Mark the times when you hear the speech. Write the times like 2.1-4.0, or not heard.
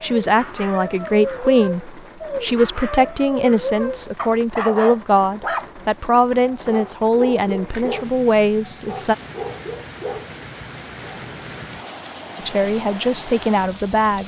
0.0-9.2, 12.3-14.2.